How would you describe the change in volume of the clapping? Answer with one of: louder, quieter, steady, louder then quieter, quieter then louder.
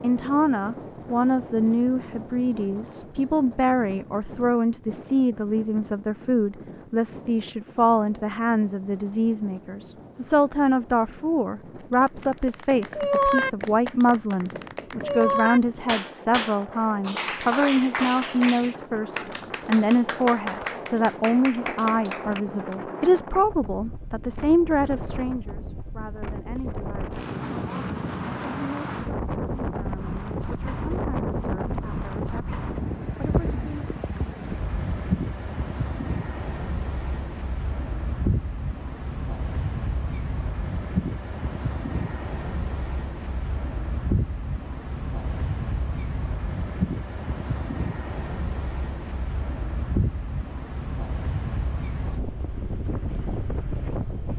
quieter.